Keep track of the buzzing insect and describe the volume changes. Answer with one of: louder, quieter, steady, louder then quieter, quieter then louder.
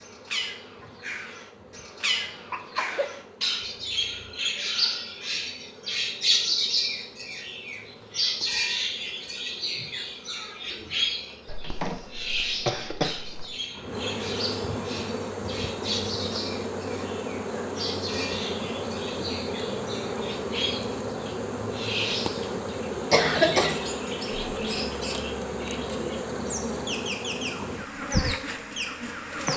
louder.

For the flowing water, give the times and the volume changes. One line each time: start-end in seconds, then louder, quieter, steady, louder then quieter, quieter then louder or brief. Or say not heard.
not heard.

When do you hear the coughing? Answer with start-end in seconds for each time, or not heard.
2.2-3.1, 11.4-13.4, 23.1-23.8.